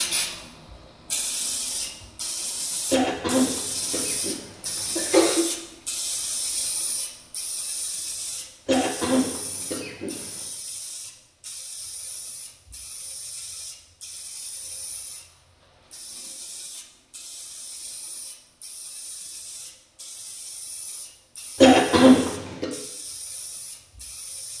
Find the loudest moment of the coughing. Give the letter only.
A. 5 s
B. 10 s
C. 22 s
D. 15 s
C.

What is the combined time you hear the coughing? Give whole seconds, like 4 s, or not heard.
5 s.